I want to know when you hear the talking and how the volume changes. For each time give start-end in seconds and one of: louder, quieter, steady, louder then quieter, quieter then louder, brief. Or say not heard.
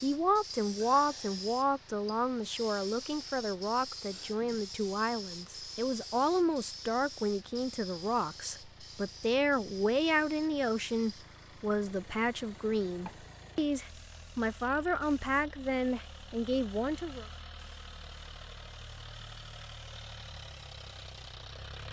0.0-17.2 steady.